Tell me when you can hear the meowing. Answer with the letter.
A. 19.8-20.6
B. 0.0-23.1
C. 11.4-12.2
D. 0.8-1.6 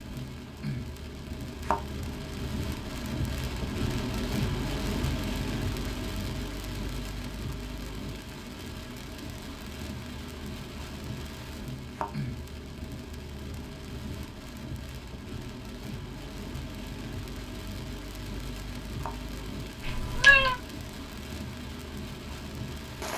A.